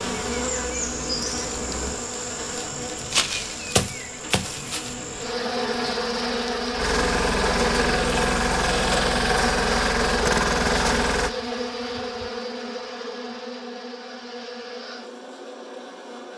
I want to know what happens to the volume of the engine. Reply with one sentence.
The volume of the engine goes up.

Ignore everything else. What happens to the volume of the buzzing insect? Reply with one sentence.
The volume of the buzzing insect goes down.